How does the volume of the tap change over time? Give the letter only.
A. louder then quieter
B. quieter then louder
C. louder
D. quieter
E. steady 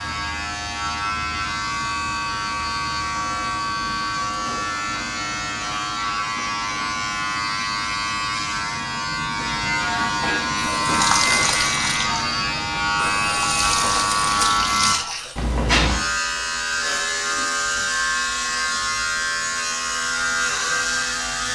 B.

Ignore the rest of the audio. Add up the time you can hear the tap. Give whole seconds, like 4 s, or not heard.
5 s.